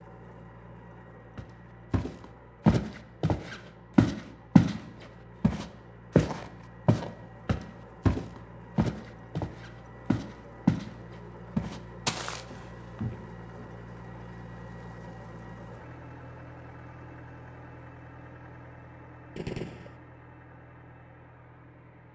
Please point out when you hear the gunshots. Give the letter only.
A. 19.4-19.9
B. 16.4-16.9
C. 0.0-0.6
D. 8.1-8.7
A.